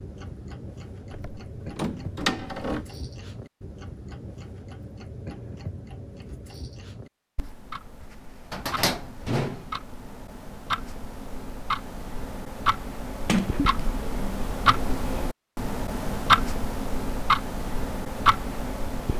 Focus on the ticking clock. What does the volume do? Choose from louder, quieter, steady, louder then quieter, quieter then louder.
louder.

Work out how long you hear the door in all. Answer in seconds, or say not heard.
4 s.